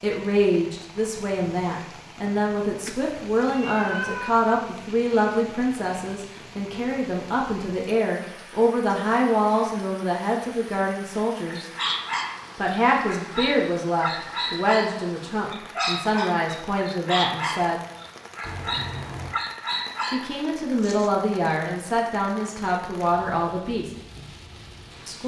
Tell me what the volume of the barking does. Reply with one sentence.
The volume of the barking stays about the same.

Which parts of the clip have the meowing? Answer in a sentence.
The meowing can be heard from 2.9 to 4.4 s and from 18.4 to 19.4 s.